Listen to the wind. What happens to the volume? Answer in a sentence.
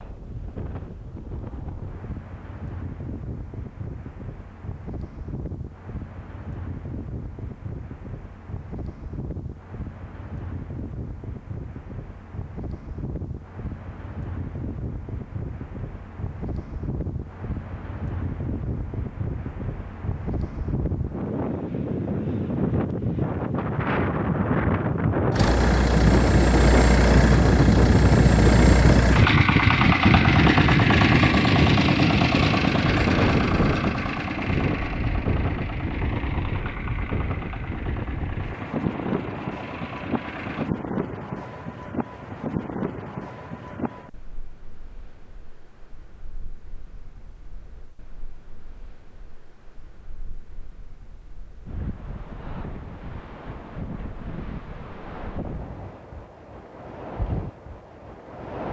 The loudness of the wind goes up, then down.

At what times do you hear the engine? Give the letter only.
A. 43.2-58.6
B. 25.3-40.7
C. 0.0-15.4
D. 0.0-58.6
B.